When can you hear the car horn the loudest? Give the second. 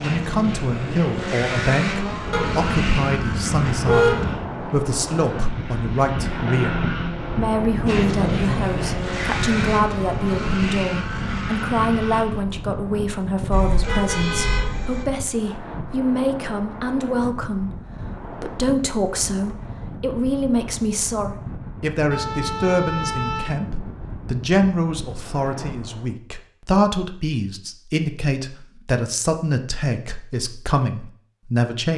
4 s.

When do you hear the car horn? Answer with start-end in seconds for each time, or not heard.
2.3-4.3, 13.5-15.1, 22.1-23.6.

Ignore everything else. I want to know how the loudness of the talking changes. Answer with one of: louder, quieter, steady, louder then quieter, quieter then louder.
steady.